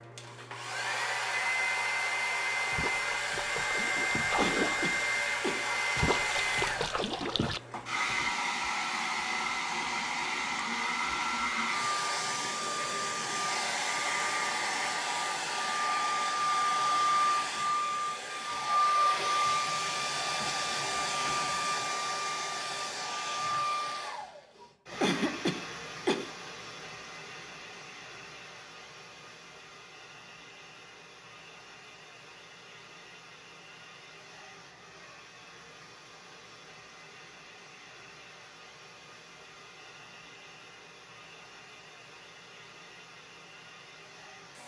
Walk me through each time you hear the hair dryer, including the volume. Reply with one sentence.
The hair dryer can be heard from 0.0 to 44.6 s, getting quieter.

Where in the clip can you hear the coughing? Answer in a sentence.
The coughing can be heard from 4.3 to 6.2 s and from 25.0 to 26.4 s.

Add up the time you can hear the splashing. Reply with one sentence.
You can hear the splashing for 5 seconds altogether.